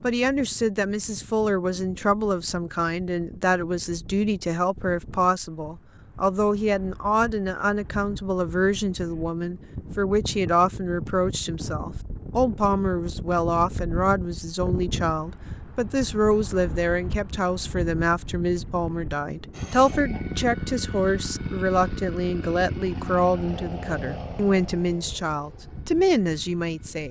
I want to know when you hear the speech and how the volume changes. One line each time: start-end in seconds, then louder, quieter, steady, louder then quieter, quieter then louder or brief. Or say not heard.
0.0-27.0 steady.